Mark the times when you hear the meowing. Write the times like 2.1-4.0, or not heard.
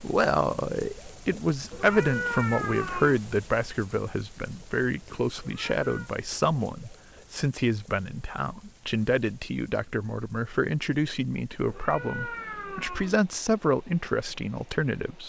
1.7-3.2, 5.4-6.1, 11.7-13.2.